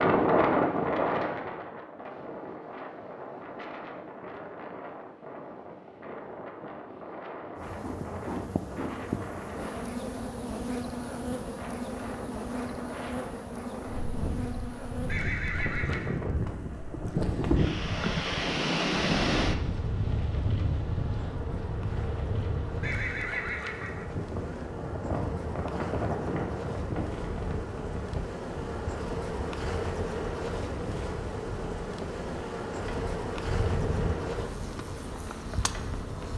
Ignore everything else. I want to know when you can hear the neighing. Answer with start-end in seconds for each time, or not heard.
15.1-16.1, 22.8-24.7.